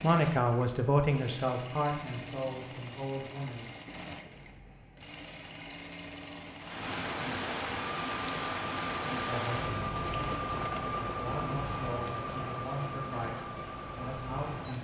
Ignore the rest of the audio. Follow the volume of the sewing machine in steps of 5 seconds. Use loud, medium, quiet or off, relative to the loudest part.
medium, loud, loud.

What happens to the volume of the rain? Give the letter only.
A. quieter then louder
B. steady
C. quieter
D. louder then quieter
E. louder
C.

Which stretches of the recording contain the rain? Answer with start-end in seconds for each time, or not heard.
6.6-14.7.